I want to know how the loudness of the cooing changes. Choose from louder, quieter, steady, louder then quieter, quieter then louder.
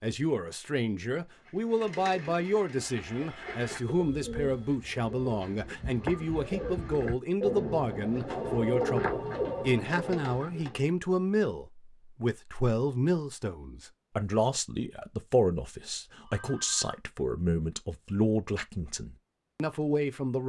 louder.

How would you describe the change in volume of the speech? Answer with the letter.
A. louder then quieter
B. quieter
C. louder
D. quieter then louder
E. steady
E.